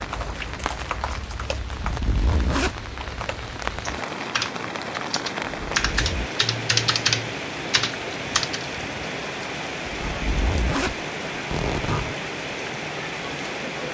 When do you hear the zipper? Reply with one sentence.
The zipper can be heard from 1.6 to 2.8 s, from 5.6 to 6.3 s and from 10.0 to 12.2 s.